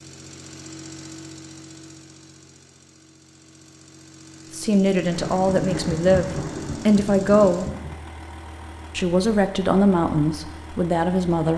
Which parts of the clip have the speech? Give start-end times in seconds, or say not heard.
4.5-7.7, 8.9-11.5.